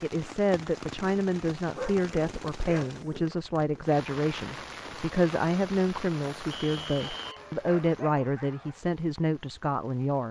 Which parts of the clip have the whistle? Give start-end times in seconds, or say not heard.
6.5-7.4.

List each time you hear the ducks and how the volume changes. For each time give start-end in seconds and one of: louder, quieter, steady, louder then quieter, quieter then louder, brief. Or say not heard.
not heard.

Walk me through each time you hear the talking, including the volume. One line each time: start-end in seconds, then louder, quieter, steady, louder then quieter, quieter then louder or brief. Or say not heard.
0.0-10.2 steady.